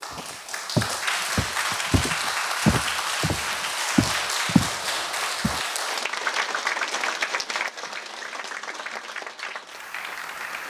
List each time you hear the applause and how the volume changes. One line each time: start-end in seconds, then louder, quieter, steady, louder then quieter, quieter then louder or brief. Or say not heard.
0.0-10.6 quieter.